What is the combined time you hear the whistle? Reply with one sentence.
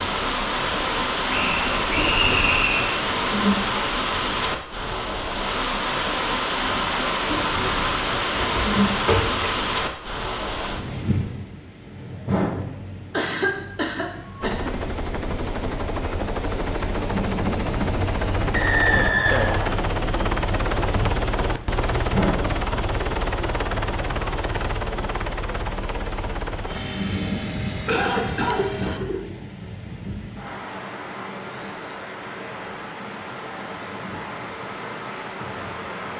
You can hear the whistle for 3 seconds altogether.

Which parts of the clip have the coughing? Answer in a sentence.
You can hear the coughing from 8.3 to 9.5 s, from 13.1 to 14.7 s and from 27.9 to 29.2 s.